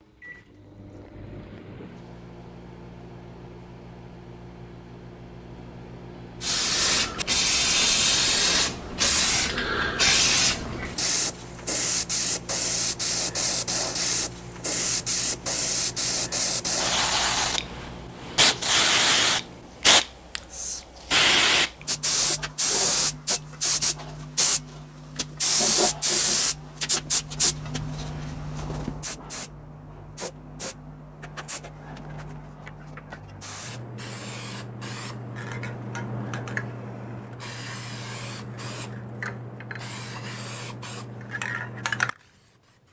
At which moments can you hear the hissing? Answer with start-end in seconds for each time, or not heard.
6.4-42.8.